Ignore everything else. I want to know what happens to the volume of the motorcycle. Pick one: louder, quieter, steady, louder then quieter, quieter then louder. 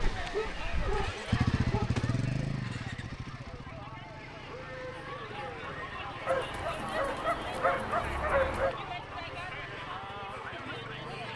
quieter.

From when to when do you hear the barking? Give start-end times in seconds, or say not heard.
0.0-1.9, 6.2-8.8.